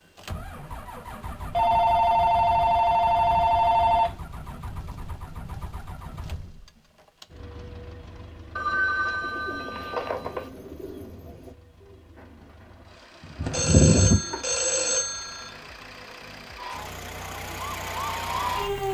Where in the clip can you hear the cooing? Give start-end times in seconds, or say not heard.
9.2-14.8.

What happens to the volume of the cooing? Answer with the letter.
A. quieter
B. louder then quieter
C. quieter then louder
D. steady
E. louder
C.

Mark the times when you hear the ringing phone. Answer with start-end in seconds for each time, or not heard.
1.5-4.2, 8.6-10.5, 13.4-15.6.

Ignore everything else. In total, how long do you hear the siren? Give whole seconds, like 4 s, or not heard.
2 s.